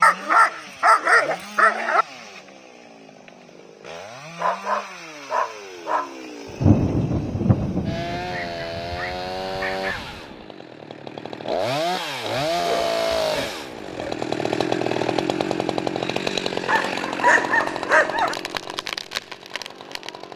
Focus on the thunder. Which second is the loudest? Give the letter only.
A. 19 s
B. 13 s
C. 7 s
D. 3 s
C.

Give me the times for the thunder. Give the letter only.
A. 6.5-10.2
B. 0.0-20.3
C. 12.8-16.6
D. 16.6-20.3
A.